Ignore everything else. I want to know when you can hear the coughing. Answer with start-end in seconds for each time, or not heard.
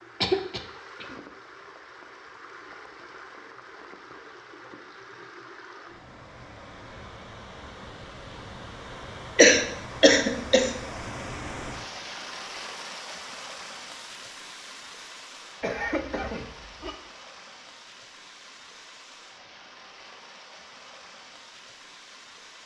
0.2-1.1, 9.3-10.7, 15.6-16.9.